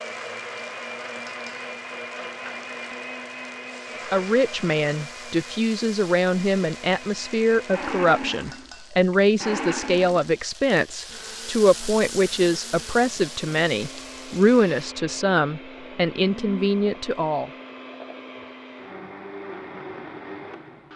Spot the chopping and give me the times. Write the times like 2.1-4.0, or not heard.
not heard.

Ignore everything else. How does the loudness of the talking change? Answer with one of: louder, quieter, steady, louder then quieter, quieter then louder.
steady.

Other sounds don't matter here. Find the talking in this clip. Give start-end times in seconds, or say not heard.
4.1-17.5.